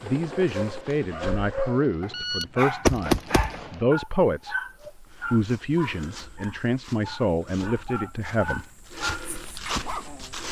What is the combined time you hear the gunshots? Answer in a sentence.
You can hear the gunshots for 2 seconds altogether.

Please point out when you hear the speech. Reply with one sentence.
The speech can be heard from 0.0 to 4.5 s and from 5.3 to 8.7 s.